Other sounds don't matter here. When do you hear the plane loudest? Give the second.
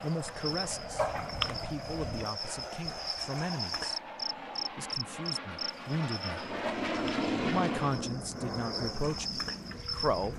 7 s.